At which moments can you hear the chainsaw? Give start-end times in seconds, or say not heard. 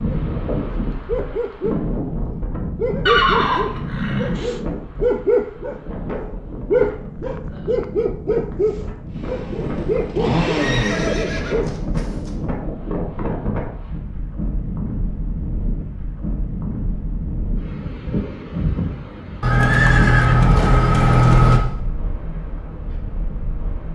9.1-11.3.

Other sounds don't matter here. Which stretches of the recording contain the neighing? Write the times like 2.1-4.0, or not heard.
3.0-4.5, 10.5-12.3, 19.4-21.6.